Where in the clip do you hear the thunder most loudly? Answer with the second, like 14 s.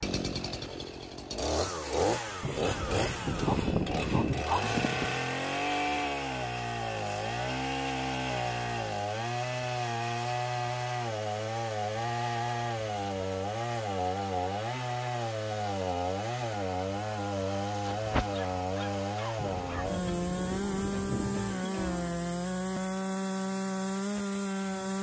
4 s.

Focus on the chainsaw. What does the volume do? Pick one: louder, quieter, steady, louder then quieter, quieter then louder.
steady.